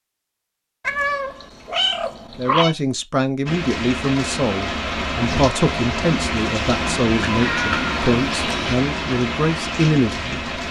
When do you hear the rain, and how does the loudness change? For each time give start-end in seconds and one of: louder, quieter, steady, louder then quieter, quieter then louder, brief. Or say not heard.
3.5-10.6 steady.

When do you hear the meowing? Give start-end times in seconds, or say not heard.
0.8-2.8, 7.2-8.8.